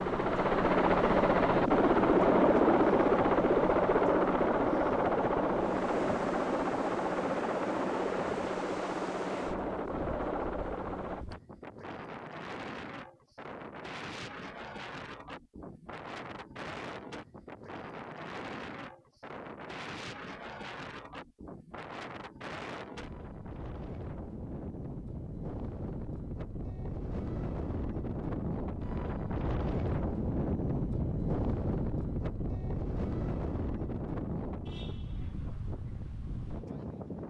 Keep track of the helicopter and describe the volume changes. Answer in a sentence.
The volume of the helicopter goes down.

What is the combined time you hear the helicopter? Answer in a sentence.
The helicopter can be heard for 11 seconds in total.